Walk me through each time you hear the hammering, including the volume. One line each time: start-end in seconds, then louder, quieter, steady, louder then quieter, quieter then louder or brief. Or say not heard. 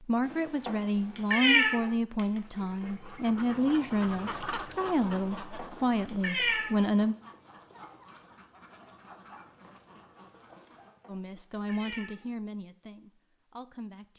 not heard.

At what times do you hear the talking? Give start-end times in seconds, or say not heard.
0.0-7.2, 11.1-14.1.